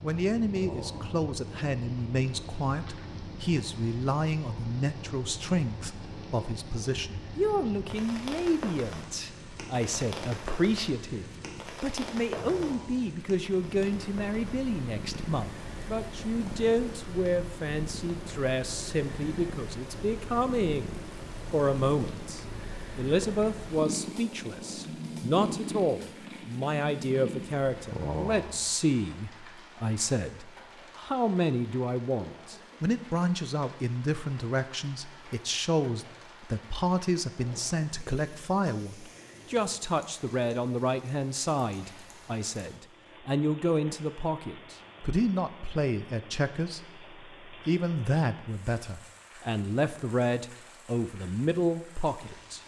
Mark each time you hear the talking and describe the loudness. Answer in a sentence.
You can hear the talking from 0.0 to 52.6 s, at a steady volume.